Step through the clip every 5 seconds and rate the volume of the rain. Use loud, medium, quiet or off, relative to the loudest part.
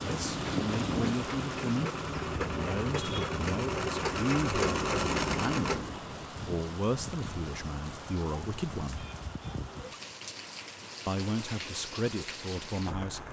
loud, medium, medium.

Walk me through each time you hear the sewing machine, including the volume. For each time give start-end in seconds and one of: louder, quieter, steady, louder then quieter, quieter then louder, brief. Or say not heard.
0.0-6.3 louder.